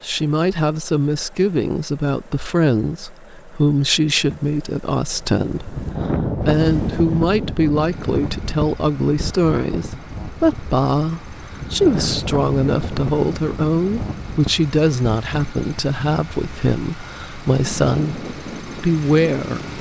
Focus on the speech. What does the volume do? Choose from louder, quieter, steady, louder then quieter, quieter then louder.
steady.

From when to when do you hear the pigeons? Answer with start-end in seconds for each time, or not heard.
not heard.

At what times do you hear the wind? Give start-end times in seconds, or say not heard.
5.3-19.7.